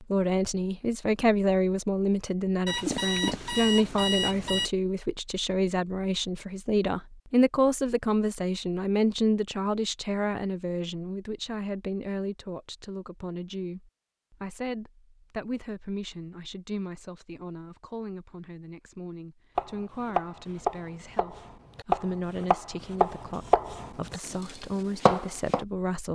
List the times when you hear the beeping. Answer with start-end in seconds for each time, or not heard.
2.6-4.7.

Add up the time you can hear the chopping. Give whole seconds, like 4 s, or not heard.
6 s.